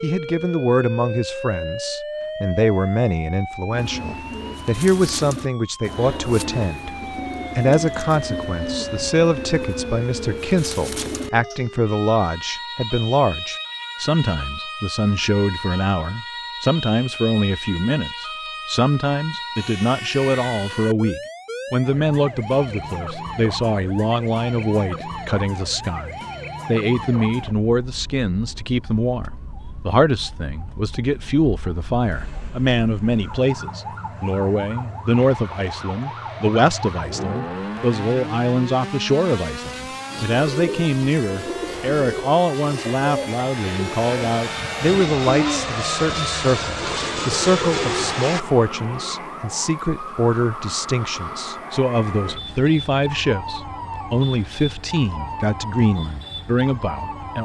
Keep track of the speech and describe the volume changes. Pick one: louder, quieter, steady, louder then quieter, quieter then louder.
steady.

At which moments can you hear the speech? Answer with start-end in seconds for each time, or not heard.
0.0-7.0, 7.5-57.3.